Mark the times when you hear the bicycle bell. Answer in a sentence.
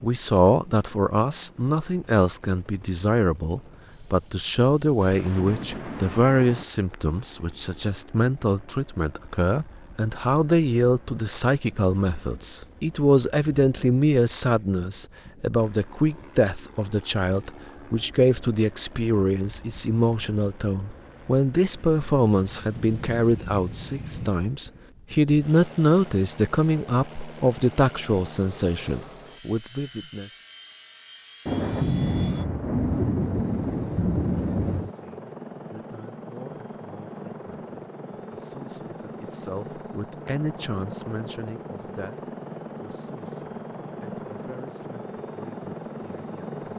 The bicycle bell can't be heard in this clip.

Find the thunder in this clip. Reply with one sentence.
The thunder can be heard from 5.0 to 6.7 s, from 22.3 to 24.3 s and from 31.4 to 34.9 s.